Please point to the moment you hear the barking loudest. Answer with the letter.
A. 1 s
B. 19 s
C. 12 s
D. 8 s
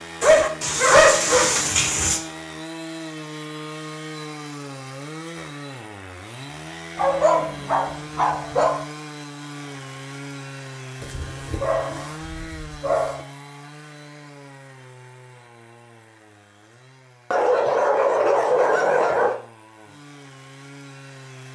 A.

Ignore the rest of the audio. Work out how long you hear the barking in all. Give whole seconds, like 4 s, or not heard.
8 s.